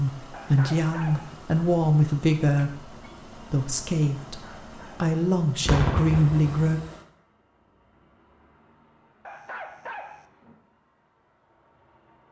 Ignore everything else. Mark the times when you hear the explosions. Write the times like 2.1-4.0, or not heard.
5.7-6.7.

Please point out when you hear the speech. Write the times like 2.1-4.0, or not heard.
0.0-6.8.